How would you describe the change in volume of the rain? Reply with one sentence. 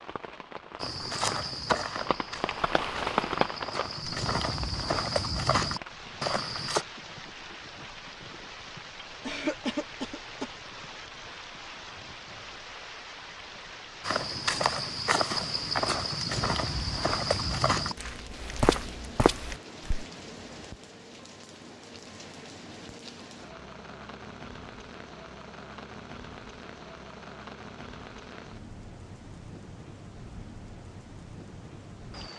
The loudness of the rain goes down.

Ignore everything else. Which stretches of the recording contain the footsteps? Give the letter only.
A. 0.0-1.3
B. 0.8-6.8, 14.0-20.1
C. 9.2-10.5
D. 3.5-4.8
B.